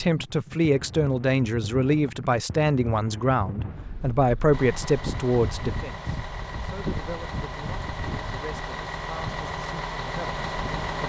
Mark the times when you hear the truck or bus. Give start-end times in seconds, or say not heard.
4.5-11.0.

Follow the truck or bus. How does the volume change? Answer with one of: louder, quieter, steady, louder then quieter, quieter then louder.
louder.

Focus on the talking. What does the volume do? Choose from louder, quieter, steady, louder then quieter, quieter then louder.
quieter.